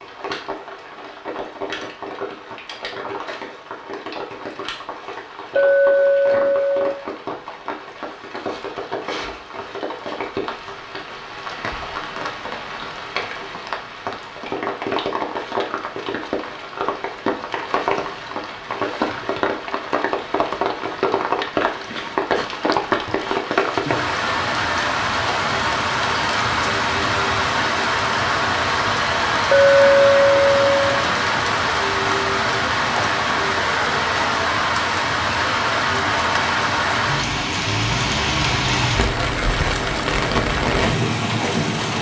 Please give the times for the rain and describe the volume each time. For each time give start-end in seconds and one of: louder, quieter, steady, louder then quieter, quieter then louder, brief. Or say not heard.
0.0-41.9 louder.